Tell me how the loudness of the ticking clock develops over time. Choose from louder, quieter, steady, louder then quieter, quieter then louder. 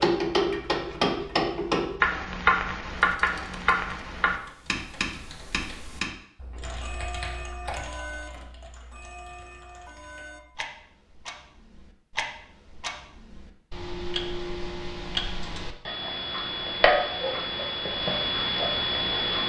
quieter then louder.